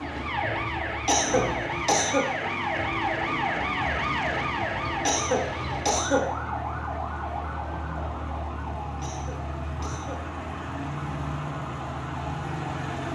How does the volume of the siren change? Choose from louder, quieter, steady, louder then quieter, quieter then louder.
quieter.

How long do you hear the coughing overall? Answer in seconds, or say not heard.
4 s.